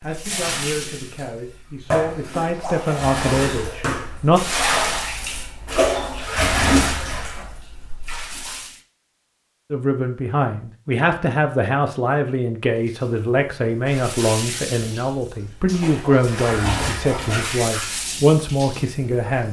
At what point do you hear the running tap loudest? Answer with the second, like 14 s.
6 s.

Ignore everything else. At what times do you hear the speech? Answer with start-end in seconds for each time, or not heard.
0.0-4.4, 9.7-19.4.